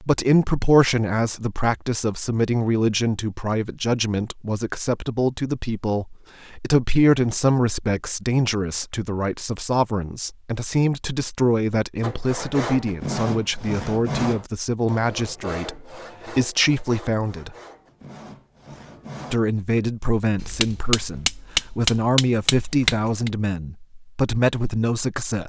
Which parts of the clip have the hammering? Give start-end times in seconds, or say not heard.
20.4-23.3.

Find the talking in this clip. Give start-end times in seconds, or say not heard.
0.0-17.6, 19.3-25.4.